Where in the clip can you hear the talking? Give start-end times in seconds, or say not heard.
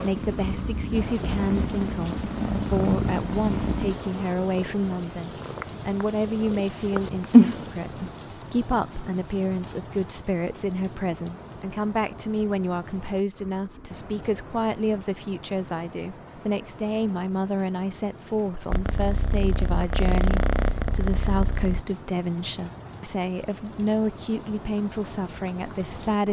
0.0-26.2.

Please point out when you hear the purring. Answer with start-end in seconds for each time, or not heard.
0.0-8.1, 18.7-21.8.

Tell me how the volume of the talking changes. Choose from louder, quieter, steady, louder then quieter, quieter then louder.
steady.